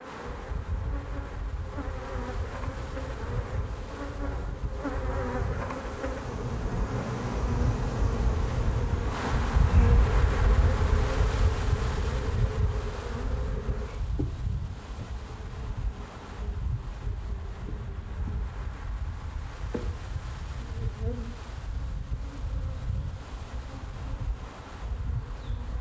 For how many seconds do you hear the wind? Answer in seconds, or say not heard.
26 s.